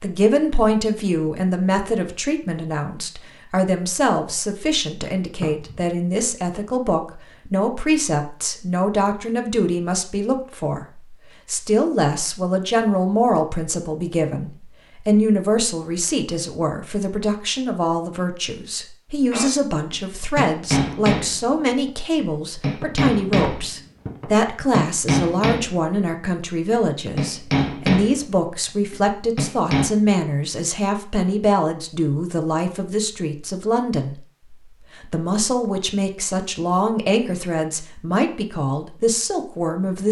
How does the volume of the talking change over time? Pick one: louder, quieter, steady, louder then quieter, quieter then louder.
steady.